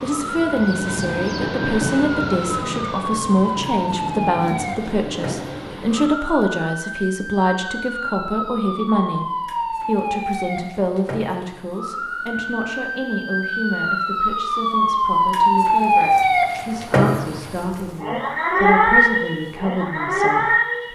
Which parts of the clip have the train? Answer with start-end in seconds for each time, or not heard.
0.0-6.2.